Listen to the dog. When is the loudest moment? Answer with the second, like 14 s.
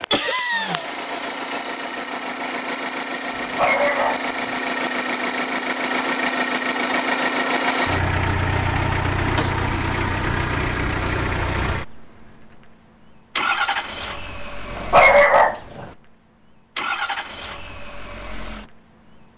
15 s.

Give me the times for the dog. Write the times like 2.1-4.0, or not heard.
3.4-4.5, 14.7-15.8.